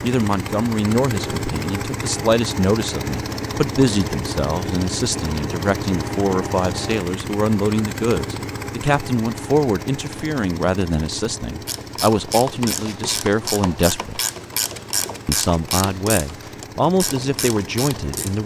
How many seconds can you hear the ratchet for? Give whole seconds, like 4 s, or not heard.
7 s.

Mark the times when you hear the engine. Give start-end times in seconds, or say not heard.
0.0-18.4.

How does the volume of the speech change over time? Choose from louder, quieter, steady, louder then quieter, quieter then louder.
steady.